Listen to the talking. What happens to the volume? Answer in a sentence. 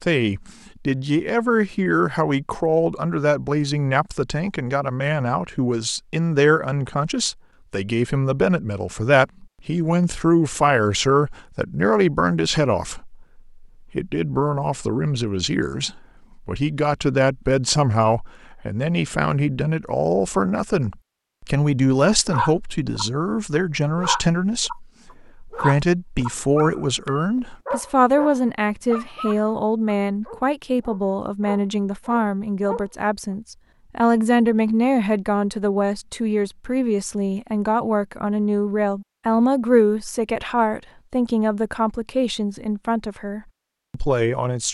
The volume of the talking stays about the same.